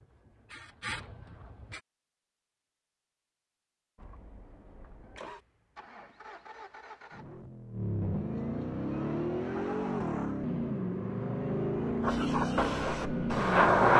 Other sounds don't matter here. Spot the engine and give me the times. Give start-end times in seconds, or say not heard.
4.0-13.9.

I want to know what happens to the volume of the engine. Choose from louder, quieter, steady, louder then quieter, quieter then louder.
louder.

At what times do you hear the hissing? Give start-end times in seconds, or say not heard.
0.0-1.8, 12.0-13.9.